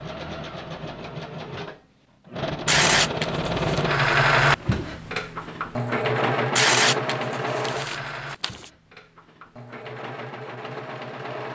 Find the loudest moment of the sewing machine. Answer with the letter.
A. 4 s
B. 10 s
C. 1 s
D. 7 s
A.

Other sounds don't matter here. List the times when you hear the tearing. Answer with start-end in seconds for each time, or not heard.
2.6-3.9, 6.5-8.7.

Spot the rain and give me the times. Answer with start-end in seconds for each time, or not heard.
not heard.